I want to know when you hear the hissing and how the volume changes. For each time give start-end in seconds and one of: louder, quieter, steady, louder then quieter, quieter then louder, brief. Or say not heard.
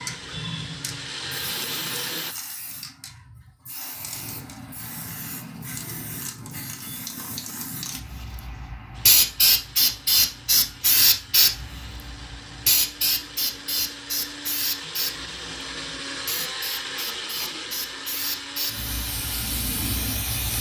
0.0-20.5 louder then quieter.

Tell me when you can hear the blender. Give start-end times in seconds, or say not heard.
0.0-2.4, 8.9-20.5.